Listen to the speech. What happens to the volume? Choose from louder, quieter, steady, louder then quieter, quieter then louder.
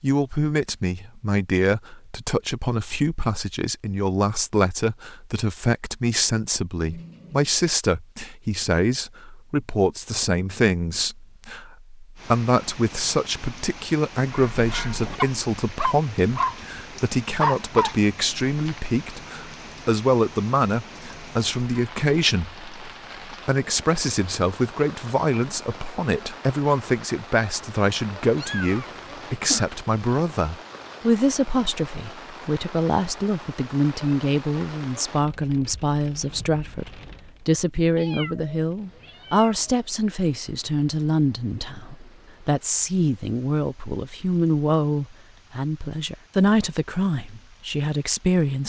steady.